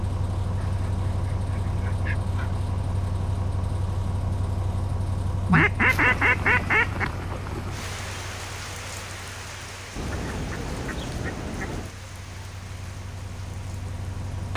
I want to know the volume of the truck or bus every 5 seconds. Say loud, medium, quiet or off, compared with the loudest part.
loud, medium, medium.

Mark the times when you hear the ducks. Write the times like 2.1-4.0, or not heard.
0.6-2.6, 5.5-7.0, 9.9-11.9.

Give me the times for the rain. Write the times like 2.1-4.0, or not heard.
5.8-14.5.